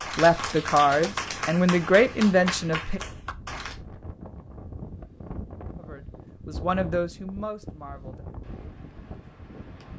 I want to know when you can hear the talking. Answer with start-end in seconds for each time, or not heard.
0.1-3.0, 5.8-8.2.